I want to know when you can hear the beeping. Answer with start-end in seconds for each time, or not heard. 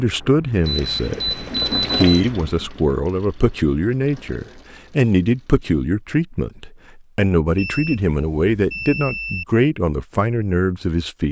0.6-2.0, 7.5-9.4.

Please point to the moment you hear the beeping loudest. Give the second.
2 s.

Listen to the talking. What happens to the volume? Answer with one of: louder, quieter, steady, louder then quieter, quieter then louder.
steady.